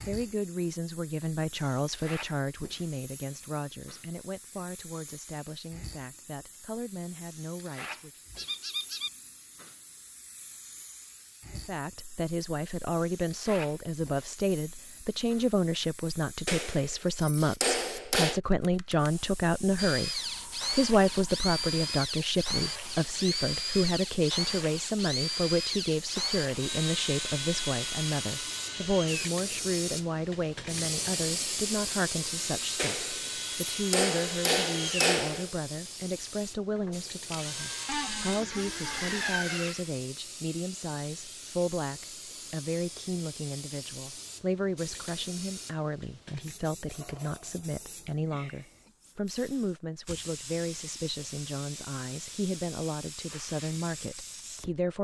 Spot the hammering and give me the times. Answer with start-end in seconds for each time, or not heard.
16.4-18.4, 32.8-35.5.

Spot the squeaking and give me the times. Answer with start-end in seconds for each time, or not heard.
8.3-9.1, 37.9-39.1.